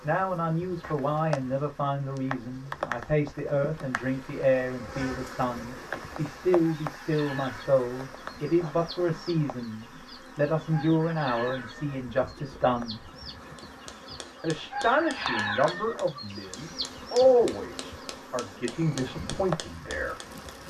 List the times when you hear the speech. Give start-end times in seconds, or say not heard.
0.0-13.1, 14.4-20.1.